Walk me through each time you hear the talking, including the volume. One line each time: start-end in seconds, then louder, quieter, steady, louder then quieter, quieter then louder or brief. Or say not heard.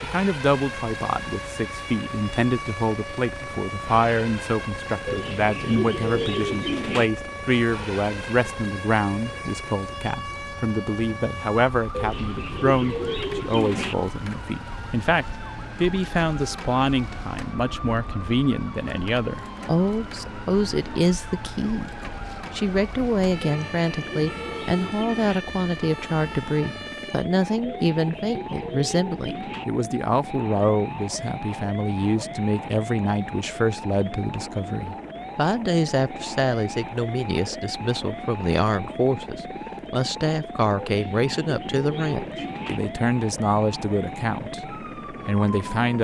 0.0-46.0 steady.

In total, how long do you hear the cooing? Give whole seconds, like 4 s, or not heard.
10 s.